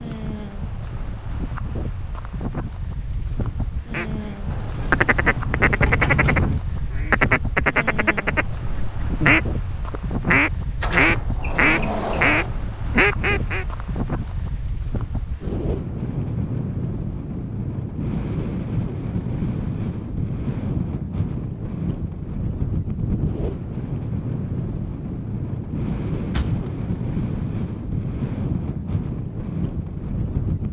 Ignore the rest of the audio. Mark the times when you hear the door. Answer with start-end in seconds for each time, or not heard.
4.5-6.6, 10.8-12.5, 26.3-26.8.